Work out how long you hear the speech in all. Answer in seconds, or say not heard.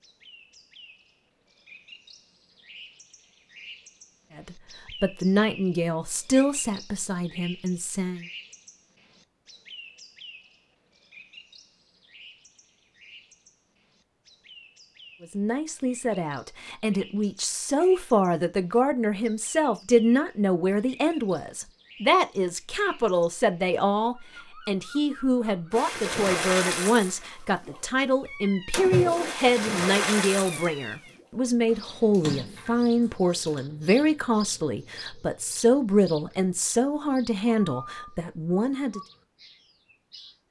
28 s.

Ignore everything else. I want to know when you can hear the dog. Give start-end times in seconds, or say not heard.
not heard.